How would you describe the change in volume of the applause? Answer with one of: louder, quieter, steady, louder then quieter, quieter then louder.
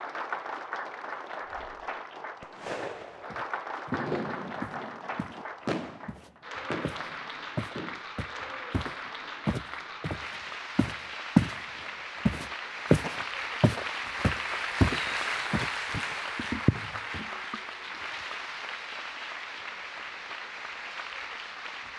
louder then quieter.